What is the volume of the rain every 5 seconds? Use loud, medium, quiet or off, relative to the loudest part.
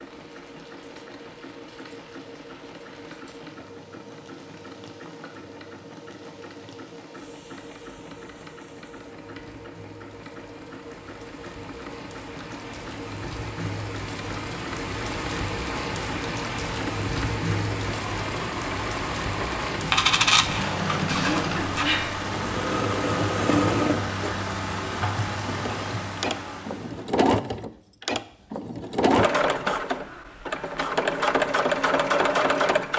quiet, quiet, medium, loud, loud, loud, off.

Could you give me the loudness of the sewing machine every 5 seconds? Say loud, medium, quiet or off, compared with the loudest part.
quiet, quiet, quiet, medium, loud, loud, loud.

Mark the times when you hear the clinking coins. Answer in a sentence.
The clinking coins can be heard from 19.9 to 21.9 s.